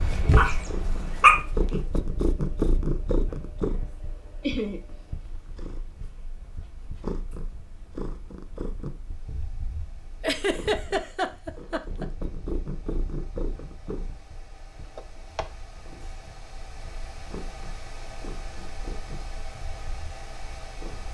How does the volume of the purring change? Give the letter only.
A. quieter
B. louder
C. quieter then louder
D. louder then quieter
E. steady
A.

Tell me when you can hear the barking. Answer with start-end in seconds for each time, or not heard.
0.0-1.9.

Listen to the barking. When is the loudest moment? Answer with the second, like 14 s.
1 s.